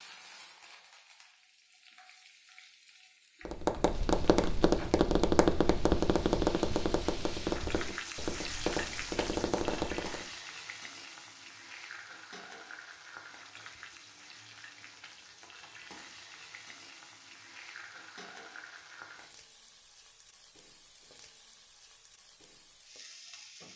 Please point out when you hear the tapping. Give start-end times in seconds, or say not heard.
3.5-10.2.